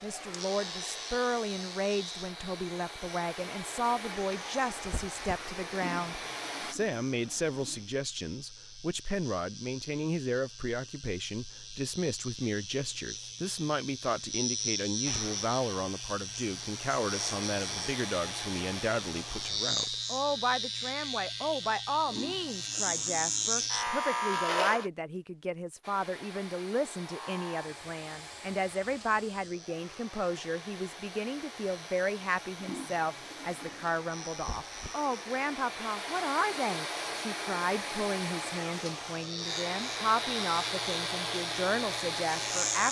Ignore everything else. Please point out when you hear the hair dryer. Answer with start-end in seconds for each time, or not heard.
0.0-6.8, 15.1-19.8, 25.8-42.8.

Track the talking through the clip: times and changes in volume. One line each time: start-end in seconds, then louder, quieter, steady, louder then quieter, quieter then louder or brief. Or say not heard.
0.0-42.8 steady.